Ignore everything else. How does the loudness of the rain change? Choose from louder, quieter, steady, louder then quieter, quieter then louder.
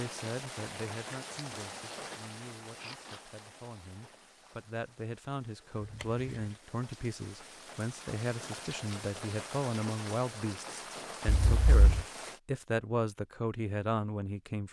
quieter then louder.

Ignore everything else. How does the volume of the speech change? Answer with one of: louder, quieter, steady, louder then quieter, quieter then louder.
louder.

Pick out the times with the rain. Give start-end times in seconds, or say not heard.
0.0-12.4.